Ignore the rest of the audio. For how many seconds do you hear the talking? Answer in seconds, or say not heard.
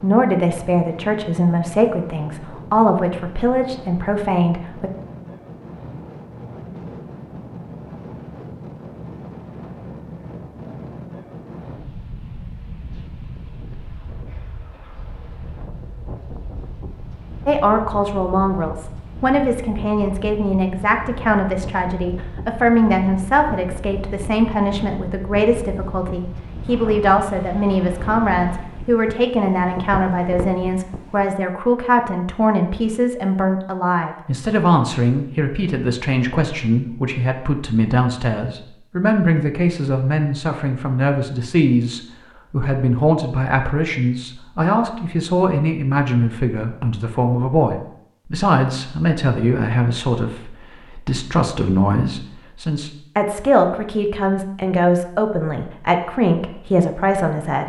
45 s.